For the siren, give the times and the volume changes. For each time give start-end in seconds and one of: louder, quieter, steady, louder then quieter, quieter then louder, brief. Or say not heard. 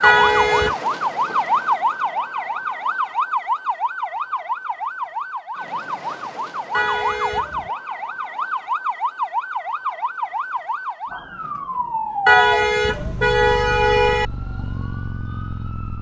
0.0-15.9 quieter.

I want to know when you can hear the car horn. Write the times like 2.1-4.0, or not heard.
0.0-0.8, 6.7-7.7, 12.2-14.2.